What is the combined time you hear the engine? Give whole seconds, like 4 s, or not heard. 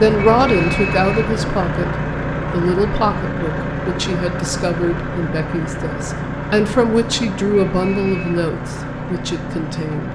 10 s.